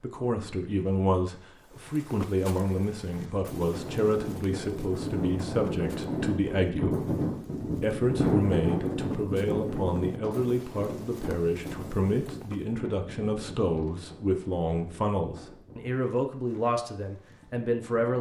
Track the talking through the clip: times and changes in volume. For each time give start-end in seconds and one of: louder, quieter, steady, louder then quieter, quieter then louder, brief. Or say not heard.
0.0-18.1 steady.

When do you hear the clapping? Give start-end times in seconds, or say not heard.
not heard.